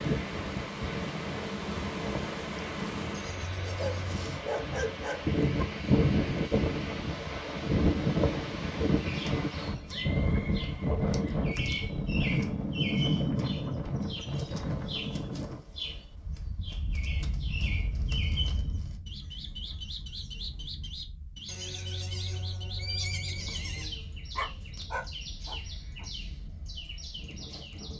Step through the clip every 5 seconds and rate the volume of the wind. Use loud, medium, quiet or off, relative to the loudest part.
medium, loud, loud, quiet, quiet, quiet.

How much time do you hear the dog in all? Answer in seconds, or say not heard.
4 s.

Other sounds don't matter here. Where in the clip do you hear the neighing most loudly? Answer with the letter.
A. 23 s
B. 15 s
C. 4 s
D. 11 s
A.